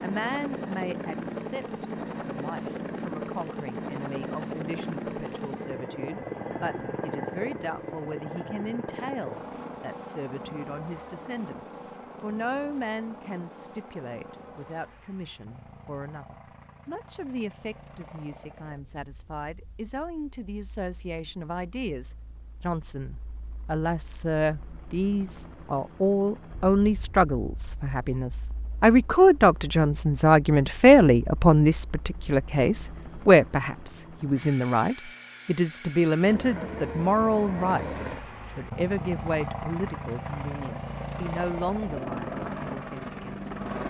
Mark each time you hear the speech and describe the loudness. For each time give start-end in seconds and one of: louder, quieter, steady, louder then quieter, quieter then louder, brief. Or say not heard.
0.0-43.8 louder then quieter.